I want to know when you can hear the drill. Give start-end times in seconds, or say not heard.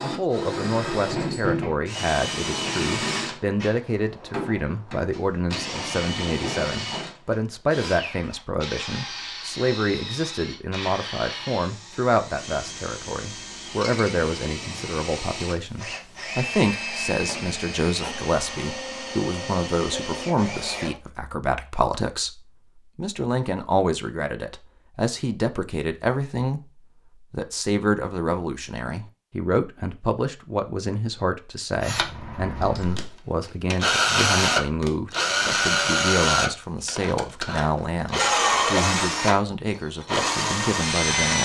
0.0-20.9, 31.8-41.4.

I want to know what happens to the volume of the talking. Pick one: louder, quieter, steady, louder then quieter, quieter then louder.
steady.